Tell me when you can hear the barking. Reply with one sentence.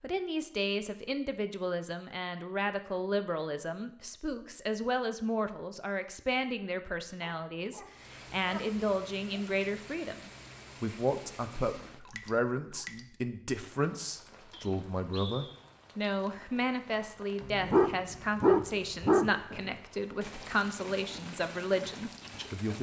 You can hear the barking from 7.2 to 9.4 s and from 17.4 to 19.3 s.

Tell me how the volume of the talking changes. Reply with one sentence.
The volume of the talking stays about the same.